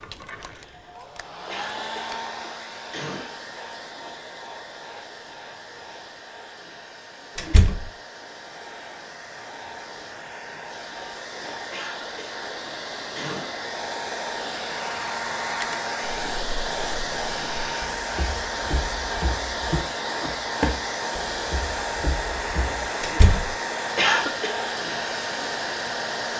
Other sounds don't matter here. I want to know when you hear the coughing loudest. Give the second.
24 s.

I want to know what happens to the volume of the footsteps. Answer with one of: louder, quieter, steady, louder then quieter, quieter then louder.
louder then quieter.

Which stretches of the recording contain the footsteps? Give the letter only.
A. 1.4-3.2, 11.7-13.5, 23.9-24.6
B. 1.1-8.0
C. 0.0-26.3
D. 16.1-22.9
D.